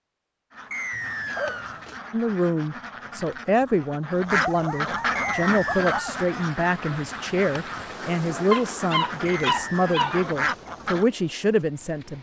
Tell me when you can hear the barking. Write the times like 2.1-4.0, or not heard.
0.9-2.0, 4.4-6.2, 8.5-10.6.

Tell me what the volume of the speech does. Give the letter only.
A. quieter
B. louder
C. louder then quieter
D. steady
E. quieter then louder
D.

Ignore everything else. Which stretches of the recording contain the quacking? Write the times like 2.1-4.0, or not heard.
0.5-11.1.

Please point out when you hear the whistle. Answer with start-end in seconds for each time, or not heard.
0.7-1.8, 5.2-6.2, 9.2-10.0.